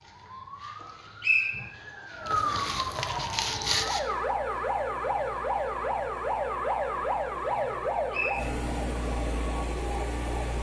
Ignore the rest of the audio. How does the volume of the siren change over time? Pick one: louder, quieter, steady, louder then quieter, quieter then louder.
louder then quieter.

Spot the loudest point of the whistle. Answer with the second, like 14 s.
1 s.